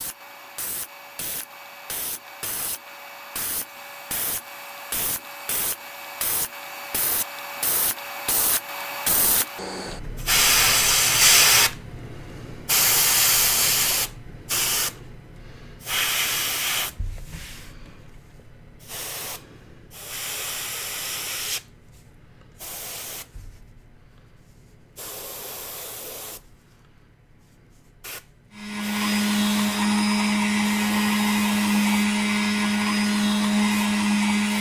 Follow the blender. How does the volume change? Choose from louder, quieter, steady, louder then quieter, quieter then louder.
steady.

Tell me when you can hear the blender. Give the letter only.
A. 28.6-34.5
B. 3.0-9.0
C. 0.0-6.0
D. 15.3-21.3
A.